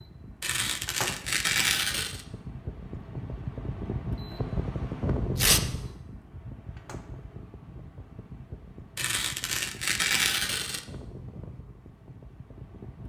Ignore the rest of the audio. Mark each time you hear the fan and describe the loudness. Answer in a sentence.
You can hear the fan from 0.0 to 13.0 s, getting louder then quieter.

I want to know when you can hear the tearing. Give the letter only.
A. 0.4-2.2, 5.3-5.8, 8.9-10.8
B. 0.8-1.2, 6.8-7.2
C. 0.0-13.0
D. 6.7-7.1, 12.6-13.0
A.